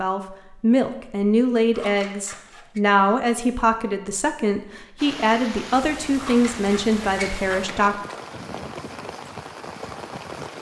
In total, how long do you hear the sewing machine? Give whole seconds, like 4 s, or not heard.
not heard.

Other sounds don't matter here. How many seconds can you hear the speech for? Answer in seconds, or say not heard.
8 s.